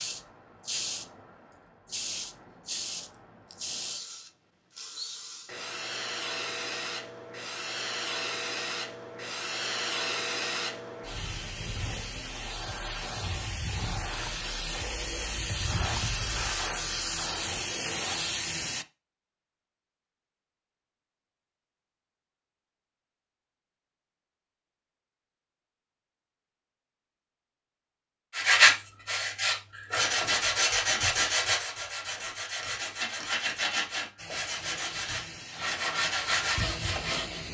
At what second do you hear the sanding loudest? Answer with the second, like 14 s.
29 s.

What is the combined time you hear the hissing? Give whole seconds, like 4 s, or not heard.
22 s.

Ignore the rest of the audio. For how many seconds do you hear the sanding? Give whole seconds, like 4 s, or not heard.
9 s.